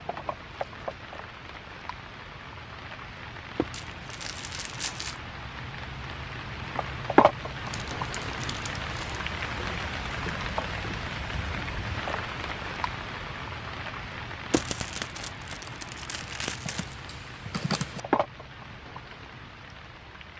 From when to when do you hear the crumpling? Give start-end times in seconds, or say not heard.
3.7-5.2, 7.7-9.2, 14.5-16.9.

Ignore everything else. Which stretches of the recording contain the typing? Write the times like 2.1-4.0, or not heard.
16.4-18.0.